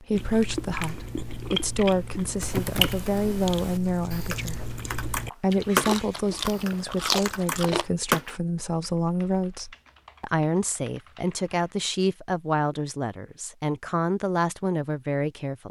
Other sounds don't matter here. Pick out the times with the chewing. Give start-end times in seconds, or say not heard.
0.1-7.9.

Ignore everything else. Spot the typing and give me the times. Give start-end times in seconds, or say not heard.
2.4-11.8.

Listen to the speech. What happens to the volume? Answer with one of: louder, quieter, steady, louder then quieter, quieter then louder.
steady.